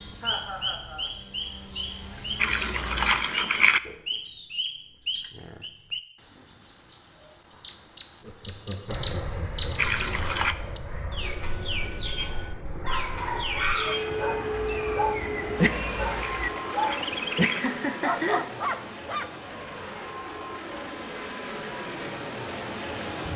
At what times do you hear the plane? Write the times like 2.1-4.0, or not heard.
0.0-3.1, 8.8-23.3.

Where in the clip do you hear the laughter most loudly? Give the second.
18 s.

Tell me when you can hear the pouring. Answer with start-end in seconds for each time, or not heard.
2.4-3.8, 9.8-10.6, 16.2-17.6.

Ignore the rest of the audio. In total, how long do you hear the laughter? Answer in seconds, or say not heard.
4 s.